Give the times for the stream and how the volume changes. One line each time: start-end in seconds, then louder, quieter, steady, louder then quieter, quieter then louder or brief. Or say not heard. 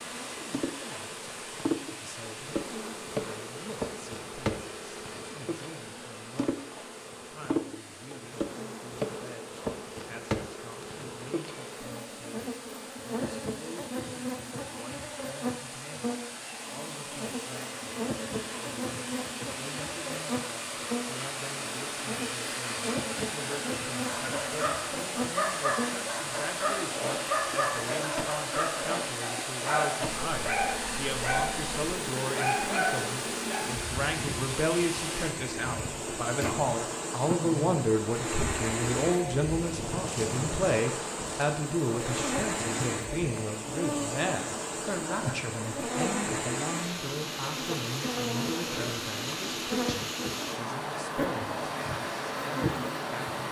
0.0-53.4 louder.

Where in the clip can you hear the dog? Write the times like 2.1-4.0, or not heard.
24.1-31.6, 32.4-33.6.